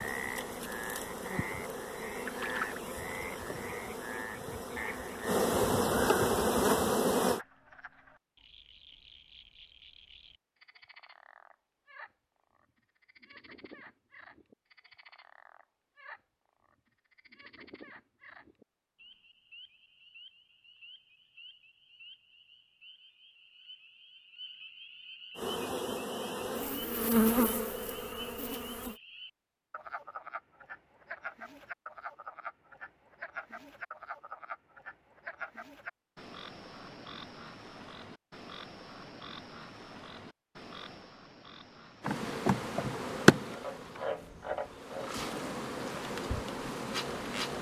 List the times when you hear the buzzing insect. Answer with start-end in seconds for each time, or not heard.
0.0-7.4, 25.4-29.0, 42.0-47.5.